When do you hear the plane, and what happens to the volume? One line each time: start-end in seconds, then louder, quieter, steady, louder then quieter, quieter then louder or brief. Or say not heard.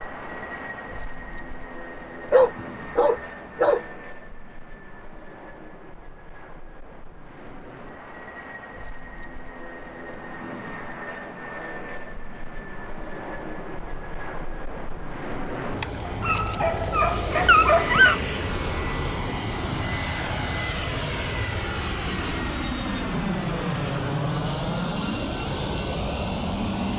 0.0-26.9 louder.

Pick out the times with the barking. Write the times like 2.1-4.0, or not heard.
2.3-3.8, 15.8-18.2.